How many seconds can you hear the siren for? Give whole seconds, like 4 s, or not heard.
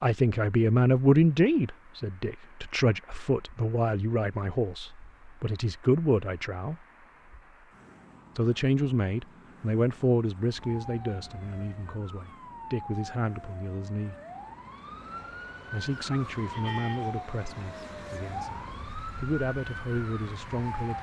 10 s.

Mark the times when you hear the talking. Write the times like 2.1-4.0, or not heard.
0.0-6.8, 8.3-14.2, 15.7-18.6, 19.2-20.9.